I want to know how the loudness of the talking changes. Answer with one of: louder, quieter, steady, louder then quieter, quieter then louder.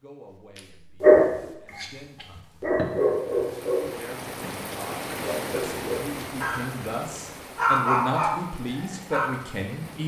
louder.